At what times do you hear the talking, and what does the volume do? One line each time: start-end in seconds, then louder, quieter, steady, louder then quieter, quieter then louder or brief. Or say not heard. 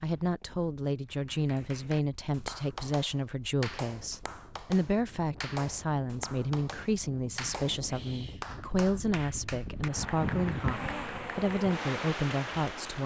0.0-13.0 steady.